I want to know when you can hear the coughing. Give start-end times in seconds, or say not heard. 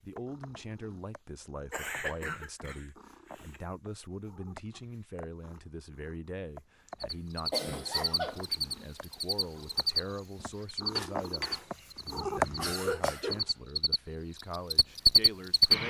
1.7-3.6, 7.1-8.4, 10.9-13.4.